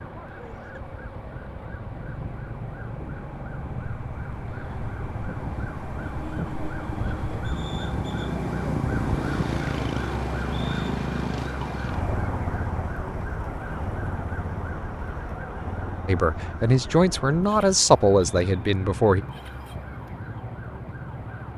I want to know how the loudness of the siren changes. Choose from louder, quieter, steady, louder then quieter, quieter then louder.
louder then quieter.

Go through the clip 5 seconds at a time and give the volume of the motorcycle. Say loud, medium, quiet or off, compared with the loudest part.
medium, loud, loud, medium, medium.